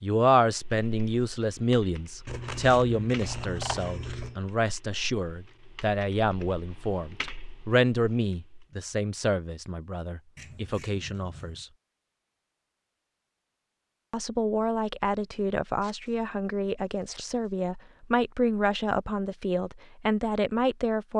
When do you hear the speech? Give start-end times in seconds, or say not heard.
0.0-11.7, 14.1-21.1.